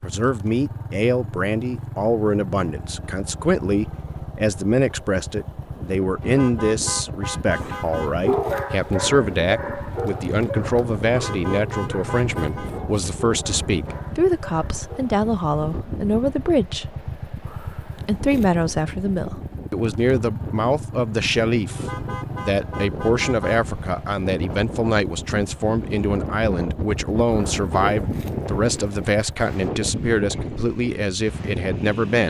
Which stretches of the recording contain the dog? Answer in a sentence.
The dog can be heard from 7.6 to 15.2 s.